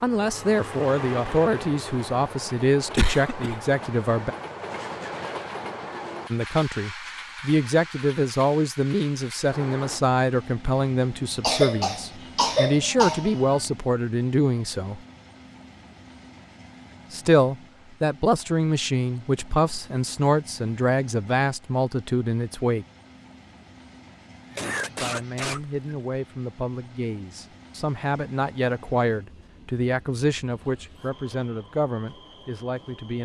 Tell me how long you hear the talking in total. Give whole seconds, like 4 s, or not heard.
27 s.